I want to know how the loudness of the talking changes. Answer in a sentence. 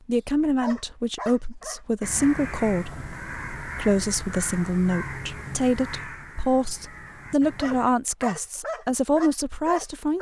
The loudness of the talking stays about the same.